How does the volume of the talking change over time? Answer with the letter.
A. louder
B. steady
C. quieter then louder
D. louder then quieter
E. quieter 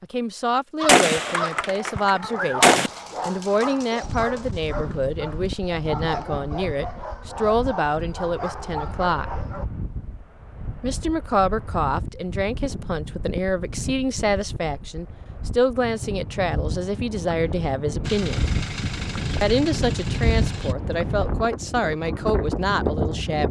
B.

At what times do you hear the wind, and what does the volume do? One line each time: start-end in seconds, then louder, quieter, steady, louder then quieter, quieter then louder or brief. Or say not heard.
4.0-23.4 louder.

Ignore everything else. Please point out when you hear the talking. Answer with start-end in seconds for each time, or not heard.
0.0-9.2, 10.8-18.4, 19.4-23.4.